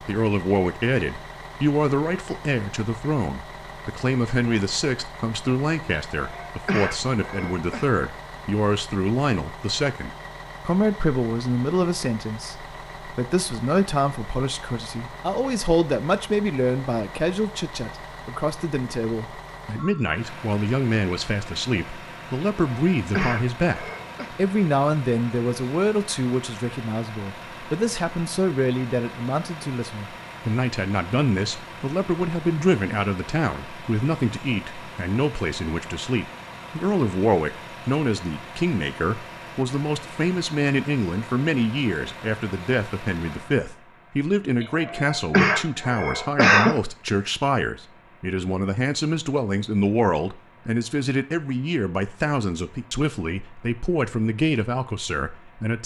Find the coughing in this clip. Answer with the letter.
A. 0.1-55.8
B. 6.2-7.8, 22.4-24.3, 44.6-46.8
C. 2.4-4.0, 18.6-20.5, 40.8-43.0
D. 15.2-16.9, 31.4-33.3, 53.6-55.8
B.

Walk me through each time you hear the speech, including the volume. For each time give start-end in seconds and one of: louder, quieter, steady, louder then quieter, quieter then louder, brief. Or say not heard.
0.1-55.8 steady.